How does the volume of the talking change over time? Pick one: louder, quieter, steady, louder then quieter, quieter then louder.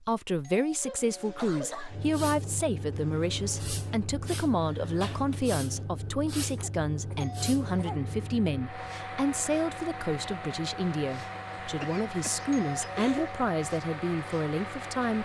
steady.